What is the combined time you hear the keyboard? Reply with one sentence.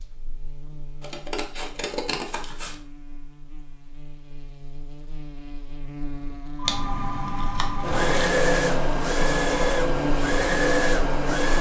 You can't hear the keyboard here.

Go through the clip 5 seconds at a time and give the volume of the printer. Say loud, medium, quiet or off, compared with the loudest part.
off, loud, loud.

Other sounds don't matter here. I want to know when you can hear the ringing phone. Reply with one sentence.
You can hear the ringing phone from 6.5 to 8.0 s.